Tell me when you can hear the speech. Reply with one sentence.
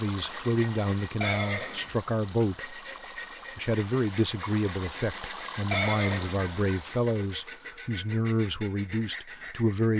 You can hear the speech from 0.0 to 2.8 s and from 3.5 to 9.9 s.